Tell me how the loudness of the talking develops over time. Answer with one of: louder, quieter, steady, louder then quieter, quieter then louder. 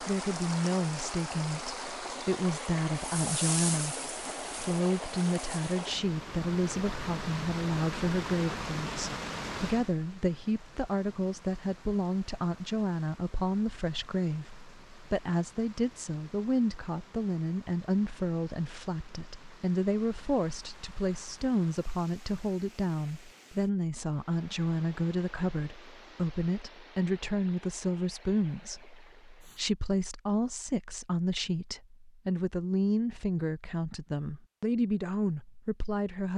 steady.